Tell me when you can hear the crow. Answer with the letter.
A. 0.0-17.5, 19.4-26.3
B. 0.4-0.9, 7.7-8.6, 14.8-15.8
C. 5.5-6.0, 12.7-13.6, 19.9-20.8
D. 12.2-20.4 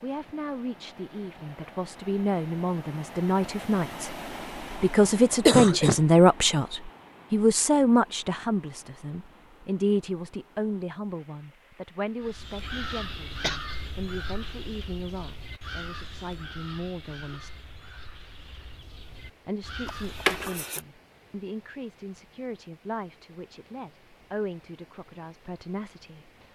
D.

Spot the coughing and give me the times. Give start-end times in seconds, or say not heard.
5.5-6.0, 12.7-13.6, 19.9-20.8.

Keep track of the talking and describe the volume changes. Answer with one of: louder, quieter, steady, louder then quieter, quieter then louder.
louder then quieter.